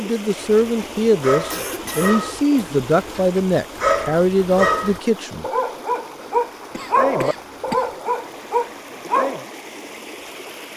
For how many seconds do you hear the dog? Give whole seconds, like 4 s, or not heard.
9 s.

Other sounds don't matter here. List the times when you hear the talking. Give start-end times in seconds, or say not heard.
0.0-5.5.